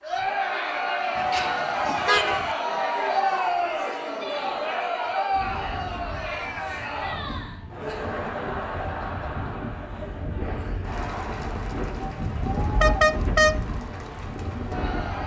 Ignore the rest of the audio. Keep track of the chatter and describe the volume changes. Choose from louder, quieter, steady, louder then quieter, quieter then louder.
quieter.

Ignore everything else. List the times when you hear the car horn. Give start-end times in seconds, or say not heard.
1.1-2.5, 12.6-13.6.